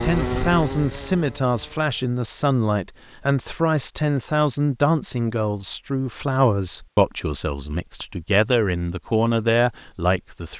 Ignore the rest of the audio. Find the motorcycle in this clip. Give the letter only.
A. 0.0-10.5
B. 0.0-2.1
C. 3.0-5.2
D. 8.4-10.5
B.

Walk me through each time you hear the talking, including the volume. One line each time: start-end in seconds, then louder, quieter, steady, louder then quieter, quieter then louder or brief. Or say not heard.
0.0-10.5 steady.